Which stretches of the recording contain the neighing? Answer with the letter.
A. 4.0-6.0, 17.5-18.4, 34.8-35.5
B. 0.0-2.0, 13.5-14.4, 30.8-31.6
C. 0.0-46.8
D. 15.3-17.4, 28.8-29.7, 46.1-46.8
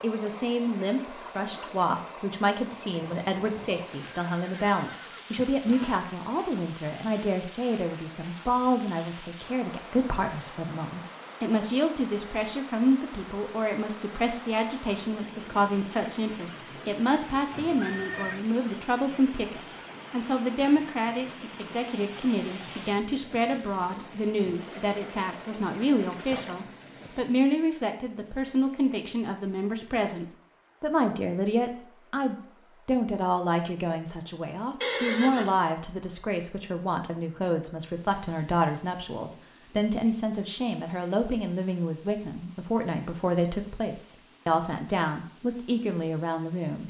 A.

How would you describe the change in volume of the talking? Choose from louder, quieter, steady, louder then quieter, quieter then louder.
steady.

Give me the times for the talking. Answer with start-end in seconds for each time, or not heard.
0.0-46.8.